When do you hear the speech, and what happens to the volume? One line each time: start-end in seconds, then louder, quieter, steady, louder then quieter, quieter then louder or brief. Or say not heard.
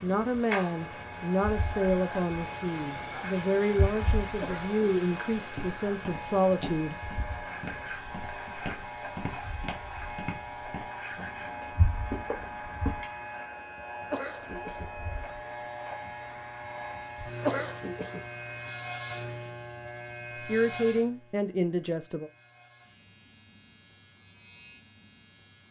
0.0-7.0 steady
20.4-22.3 brief.